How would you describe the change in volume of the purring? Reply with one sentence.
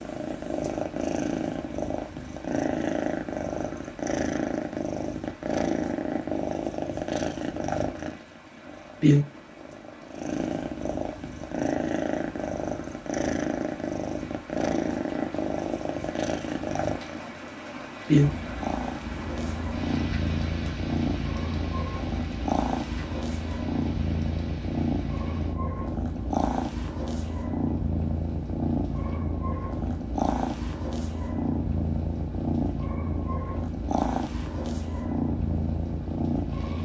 The volume of the purring stays about the same.